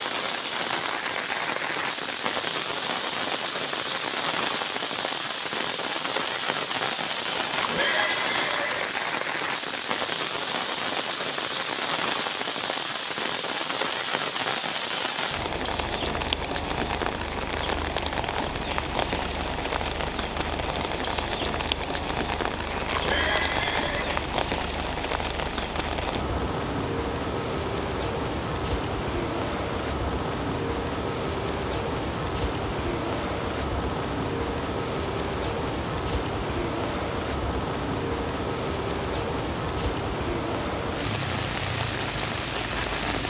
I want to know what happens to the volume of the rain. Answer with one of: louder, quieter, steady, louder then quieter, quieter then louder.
steady.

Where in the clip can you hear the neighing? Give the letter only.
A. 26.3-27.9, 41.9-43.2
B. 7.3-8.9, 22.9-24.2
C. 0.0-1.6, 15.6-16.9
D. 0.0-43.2
B.